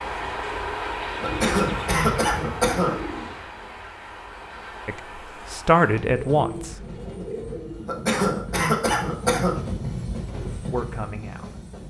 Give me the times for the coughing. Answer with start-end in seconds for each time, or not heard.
1.2-3.0, 7.8-9.6.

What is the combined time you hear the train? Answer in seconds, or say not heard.
12 s.